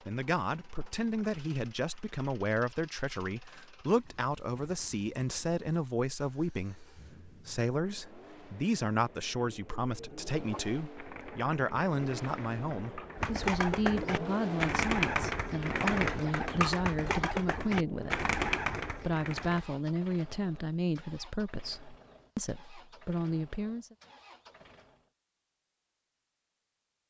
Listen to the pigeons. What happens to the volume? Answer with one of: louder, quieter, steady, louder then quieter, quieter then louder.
louder.